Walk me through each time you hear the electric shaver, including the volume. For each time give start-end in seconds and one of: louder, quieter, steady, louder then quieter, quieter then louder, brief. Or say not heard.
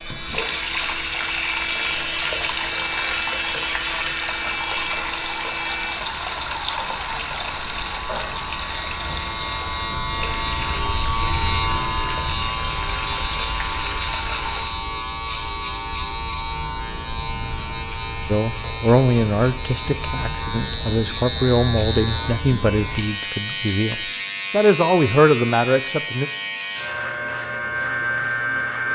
0.0-28.8 steady.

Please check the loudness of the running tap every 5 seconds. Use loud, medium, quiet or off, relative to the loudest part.
loud, loud, medium, off, off, off.